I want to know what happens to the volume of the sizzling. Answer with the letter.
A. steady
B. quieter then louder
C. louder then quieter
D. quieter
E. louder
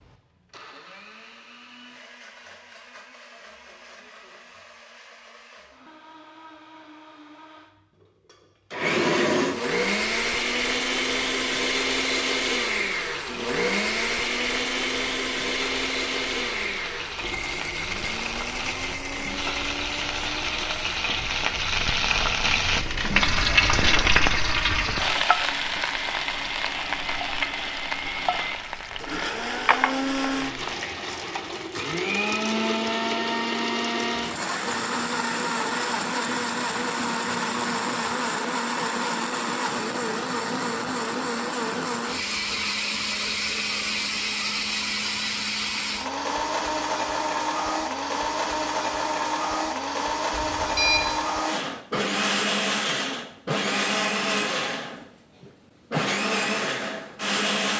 C.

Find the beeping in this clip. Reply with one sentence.
The beeping can be heard from 50.3 to 51.1 s.